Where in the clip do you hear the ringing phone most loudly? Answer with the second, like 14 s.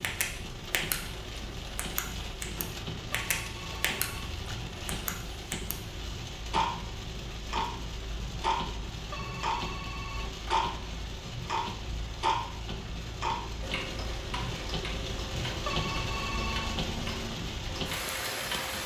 16 s.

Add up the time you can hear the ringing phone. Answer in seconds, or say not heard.
4 s.